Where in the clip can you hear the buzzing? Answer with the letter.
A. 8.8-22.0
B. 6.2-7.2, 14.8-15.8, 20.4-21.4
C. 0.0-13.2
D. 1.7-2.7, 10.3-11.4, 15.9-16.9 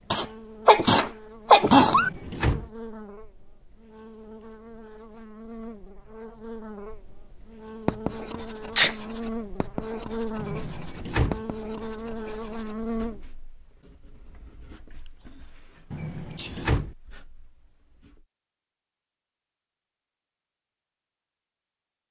C.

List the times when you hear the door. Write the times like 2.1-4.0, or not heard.
1.7-2.7, 10.3-11.4, 15.9-16.9.